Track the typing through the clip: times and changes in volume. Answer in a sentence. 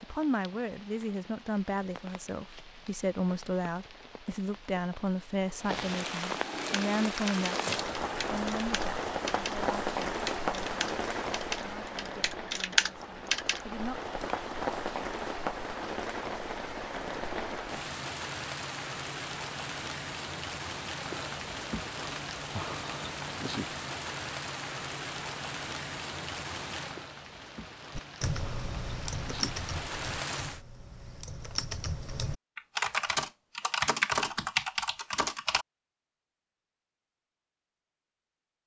You can hear the typing from 6.7 to 14.3 s, getting louder; and from 27.9 to 35.6 s, getting quieter then louder.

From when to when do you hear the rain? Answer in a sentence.
The rain can be heard from 0.0 to 30.6 s.